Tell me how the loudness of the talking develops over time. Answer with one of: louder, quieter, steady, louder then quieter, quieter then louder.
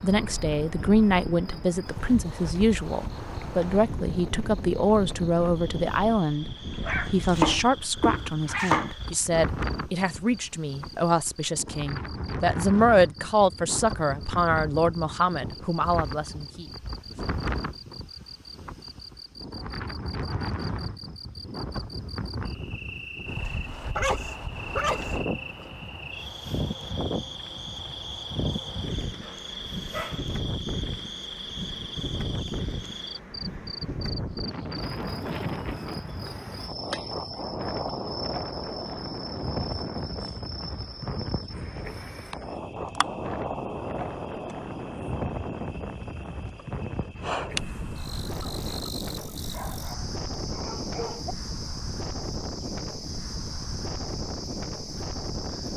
steady.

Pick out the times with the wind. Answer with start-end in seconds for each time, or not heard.
0.0-55.7.